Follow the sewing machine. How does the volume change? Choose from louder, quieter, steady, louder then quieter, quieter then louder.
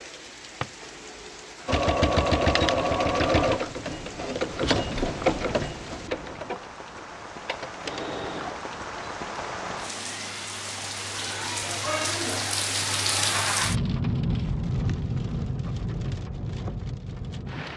quieter.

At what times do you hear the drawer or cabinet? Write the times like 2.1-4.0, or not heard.
0.2-0.8.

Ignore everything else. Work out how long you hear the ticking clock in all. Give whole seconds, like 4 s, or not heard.
not heard.